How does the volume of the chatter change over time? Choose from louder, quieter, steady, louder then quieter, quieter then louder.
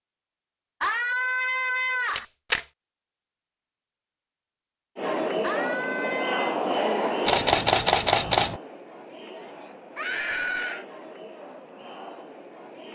quieter.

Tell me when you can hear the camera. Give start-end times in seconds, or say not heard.
2.1-2.6, 7.2-8.6.